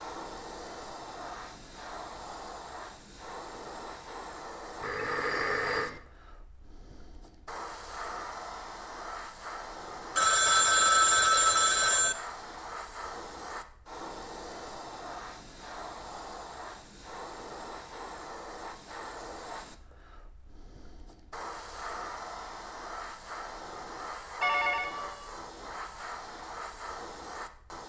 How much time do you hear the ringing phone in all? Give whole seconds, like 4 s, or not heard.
4 s.